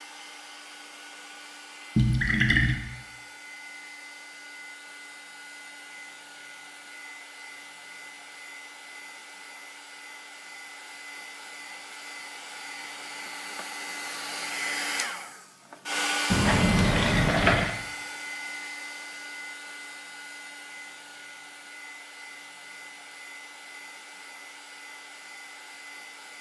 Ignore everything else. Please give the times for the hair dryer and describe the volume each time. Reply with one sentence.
The hair dryer can be heard from 0.0 to 26.3 s, getting louder then quieter.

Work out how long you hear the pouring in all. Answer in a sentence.
The pouring can be heard for 2 seconds in total.